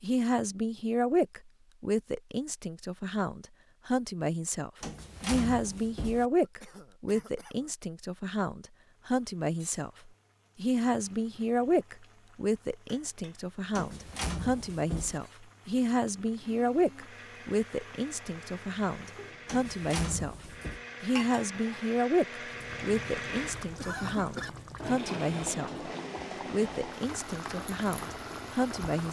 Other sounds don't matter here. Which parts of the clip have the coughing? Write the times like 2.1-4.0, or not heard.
6.4-7.8, 23.6-24.5.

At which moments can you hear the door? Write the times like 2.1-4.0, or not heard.
4.8-6.3, 13.7-15.2, 19.4-20.8.